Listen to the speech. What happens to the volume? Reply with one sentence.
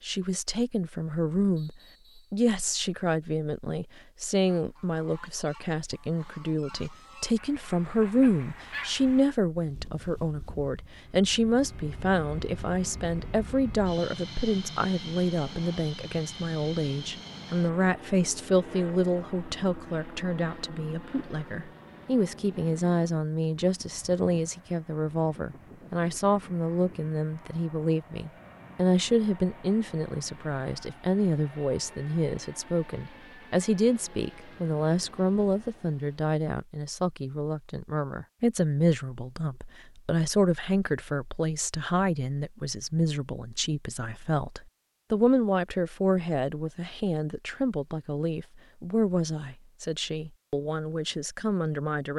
The volume of the speech stays about the same.